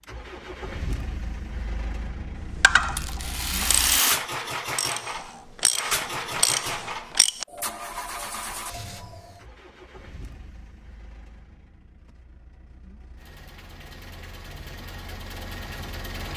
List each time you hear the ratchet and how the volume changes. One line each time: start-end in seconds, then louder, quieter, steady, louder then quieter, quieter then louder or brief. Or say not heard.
2.5-7.5 louder.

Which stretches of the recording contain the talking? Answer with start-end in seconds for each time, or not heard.
not heard.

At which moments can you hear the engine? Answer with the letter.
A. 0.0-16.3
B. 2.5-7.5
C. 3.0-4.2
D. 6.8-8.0
A.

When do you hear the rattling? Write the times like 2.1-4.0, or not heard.
3.0-4.2.